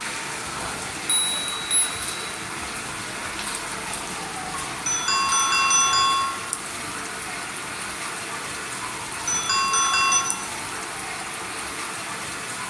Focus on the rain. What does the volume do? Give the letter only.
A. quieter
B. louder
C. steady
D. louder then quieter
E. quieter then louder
C.